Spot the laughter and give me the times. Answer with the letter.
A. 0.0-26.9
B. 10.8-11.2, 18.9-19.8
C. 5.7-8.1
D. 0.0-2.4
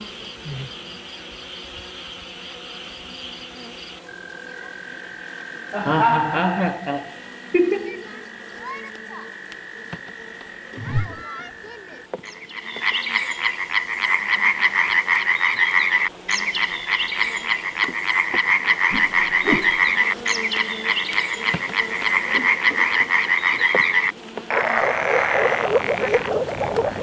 C.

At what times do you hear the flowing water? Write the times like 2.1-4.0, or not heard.
not heard.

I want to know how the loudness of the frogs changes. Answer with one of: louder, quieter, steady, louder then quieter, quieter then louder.
louder.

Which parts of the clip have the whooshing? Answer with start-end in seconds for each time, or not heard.
10.8-11.2, 18.9-19.8.